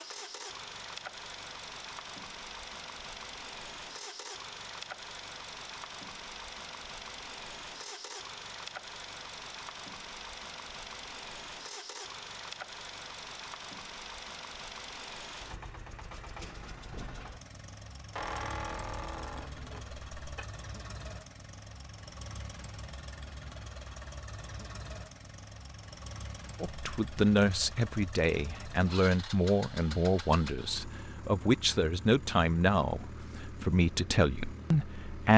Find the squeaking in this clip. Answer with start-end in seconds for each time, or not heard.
18.1-20.4.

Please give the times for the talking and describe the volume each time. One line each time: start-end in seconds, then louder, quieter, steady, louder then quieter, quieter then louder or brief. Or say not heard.
26.6-35.3 steady.